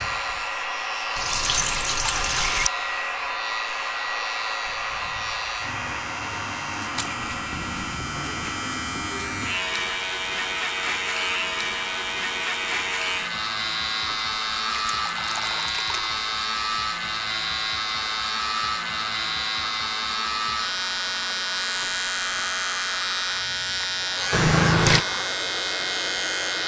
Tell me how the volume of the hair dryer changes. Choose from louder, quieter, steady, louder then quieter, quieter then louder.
quieter.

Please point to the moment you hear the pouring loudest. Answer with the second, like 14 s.
25 s.